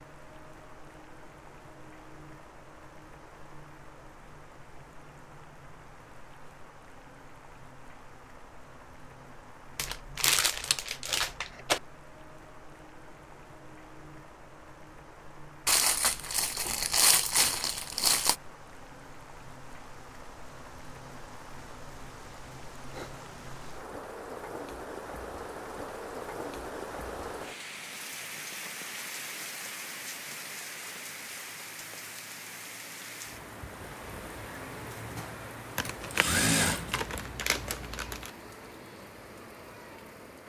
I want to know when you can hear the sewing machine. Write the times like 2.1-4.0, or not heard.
34.5-37.5.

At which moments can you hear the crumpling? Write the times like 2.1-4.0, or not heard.
9.8-11.8, 15.7-18.4, 35.8-38.3.